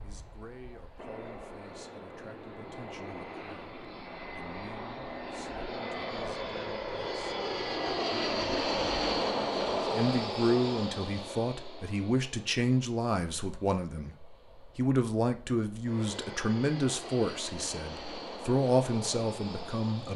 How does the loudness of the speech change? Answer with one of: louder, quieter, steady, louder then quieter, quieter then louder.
louder.